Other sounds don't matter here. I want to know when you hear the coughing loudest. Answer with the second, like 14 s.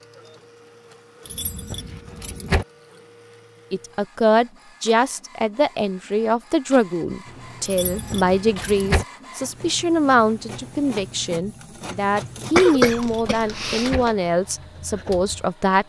13 s.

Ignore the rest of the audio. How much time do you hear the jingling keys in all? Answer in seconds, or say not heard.
4 s.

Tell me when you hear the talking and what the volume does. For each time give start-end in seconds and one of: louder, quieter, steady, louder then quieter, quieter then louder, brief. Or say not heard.
3.7-15.8 steady.